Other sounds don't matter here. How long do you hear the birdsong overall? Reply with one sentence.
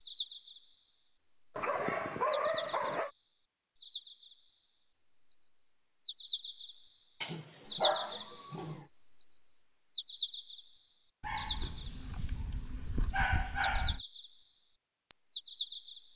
The birdsong can be heard for 16 seconds in total.